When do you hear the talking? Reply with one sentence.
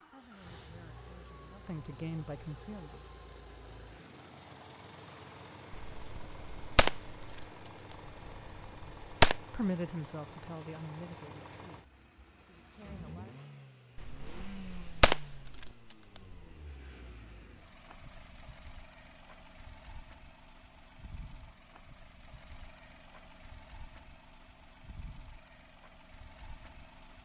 The talking can be heard from 0.0 to 3.0 s and from 9.4 to 13.3 s.